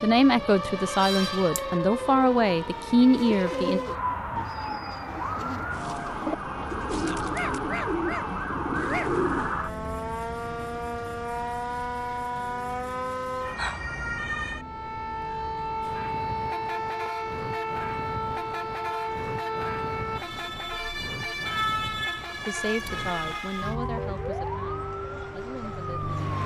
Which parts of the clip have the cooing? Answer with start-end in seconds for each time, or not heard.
3.1-9.6.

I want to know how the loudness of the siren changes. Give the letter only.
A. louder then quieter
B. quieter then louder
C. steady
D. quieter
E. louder
C.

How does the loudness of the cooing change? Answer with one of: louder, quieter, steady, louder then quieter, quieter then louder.
quieter then louder.